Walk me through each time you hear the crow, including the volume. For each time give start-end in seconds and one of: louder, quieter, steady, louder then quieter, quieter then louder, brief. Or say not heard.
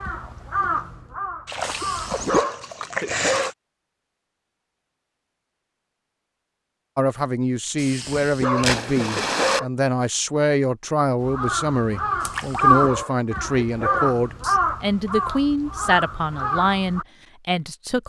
0.0-2.4 brief
11.2-17.1 louder then quieter.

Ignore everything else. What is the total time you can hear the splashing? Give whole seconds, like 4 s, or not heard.
4 s.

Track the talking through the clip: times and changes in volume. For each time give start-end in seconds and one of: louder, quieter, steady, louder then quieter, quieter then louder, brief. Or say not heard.
7.0-18.0 steady.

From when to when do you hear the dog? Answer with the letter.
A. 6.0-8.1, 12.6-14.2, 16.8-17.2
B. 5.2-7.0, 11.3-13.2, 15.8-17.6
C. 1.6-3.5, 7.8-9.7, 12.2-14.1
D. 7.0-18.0
C.